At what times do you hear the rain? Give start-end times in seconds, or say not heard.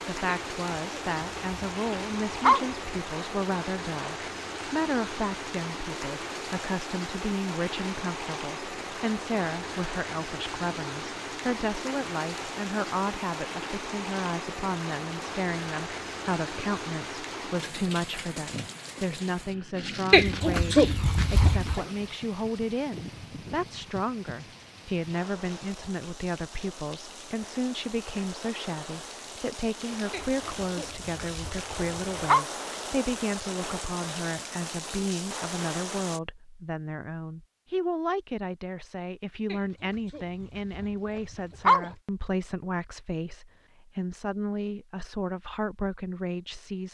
0.0-36.2.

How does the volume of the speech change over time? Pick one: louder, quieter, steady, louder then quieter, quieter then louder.
steady.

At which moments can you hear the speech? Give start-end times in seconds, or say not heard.
0.1-46.8.